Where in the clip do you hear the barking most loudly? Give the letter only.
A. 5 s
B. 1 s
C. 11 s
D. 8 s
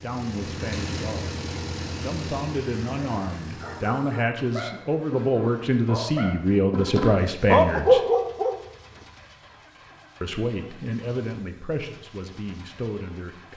D.